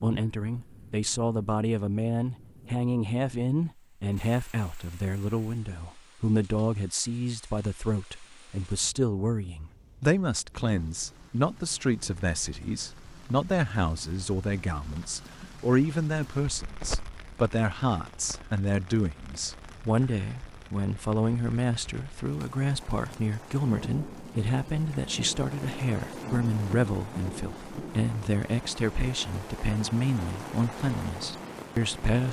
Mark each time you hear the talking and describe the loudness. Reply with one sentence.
The talking can be heard from 0.0 to 32.2 s, at a steady volume.